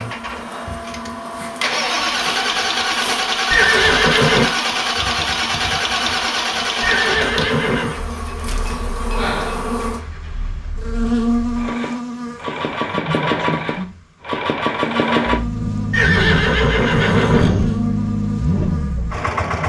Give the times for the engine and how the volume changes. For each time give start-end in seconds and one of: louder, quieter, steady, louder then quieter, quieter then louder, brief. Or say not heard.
0.0-19.6 quieter then louder.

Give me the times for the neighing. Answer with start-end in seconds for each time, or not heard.
3.5-4.5, 6.8-8.0, 15.9-17.8.